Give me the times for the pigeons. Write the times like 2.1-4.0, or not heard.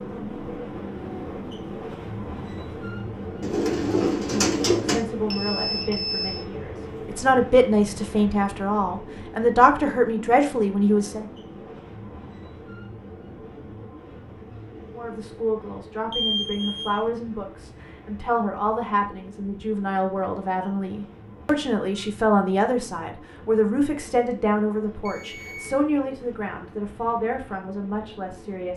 3.4-5.0.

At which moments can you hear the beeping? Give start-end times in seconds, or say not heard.
5.2-6.5, 16.1-17.0, 25.1-25.8.